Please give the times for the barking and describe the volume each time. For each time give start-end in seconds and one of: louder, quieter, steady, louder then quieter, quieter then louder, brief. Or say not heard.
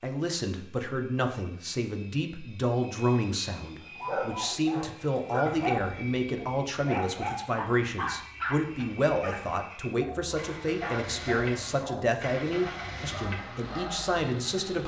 3.9-14.2 quieter.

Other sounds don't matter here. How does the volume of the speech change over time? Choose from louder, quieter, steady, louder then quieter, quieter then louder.
steady.